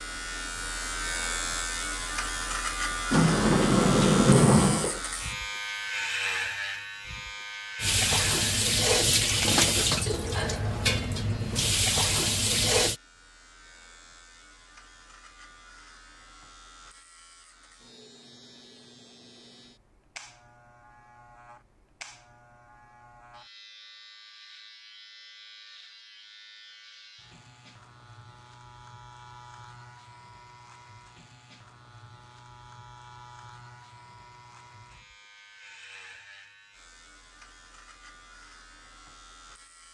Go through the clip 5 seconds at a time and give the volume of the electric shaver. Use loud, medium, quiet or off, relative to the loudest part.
loud, loud, quiet, quiet, quiet, quiet, quiet, quiet.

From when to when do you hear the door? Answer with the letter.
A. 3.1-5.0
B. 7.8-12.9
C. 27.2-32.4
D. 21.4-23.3
A.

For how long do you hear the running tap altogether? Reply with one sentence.
You can hear the running tap for 5 seconds altogether.